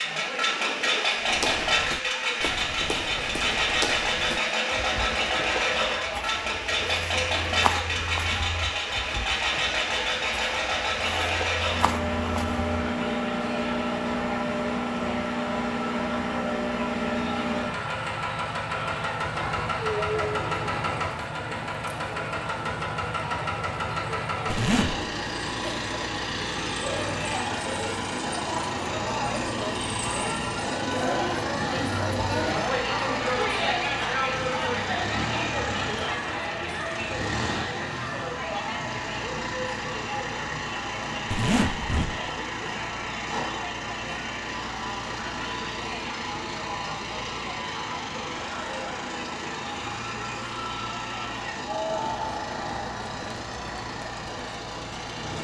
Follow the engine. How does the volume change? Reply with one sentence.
The volume of the engine goes down.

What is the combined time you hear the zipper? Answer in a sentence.
You can hear the zipper for 3 seconds altogether.